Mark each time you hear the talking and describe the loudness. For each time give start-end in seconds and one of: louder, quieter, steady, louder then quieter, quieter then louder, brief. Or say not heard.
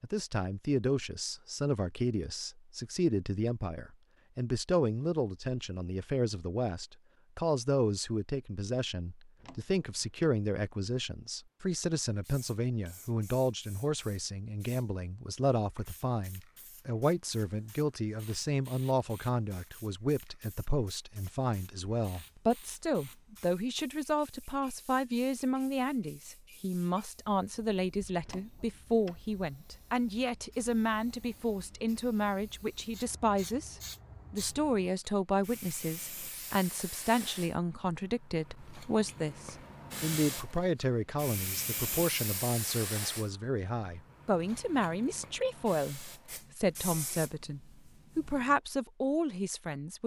0.0-50.0 steady.